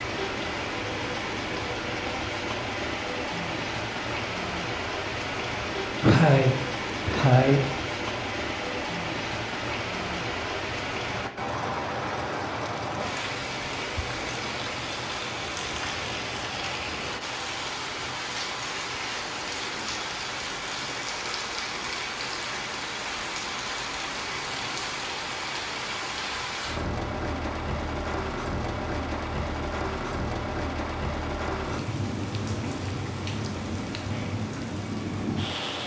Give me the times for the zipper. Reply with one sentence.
You can't hear the zipper here.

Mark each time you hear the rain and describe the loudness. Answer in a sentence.
You can hear the rain from 0.0 to 35.8 s, at a steady volume.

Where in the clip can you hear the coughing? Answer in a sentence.
You can hear the coughing from 6.0 to 7.6 s.